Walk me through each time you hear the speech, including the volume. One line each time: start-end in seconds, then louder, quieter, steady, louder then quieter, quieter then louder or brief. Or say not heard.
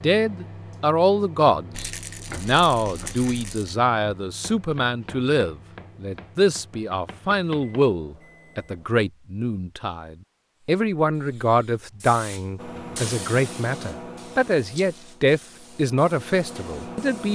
0.0-17.2 steady.